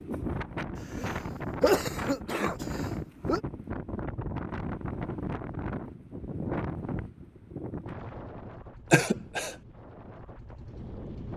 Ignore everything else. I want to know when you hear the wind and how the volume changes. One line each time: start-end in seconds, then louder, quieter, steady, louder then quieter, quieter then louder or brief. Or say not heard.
0.0-11.3 quieter.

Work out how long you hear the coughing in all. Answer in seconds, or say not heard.
3 s.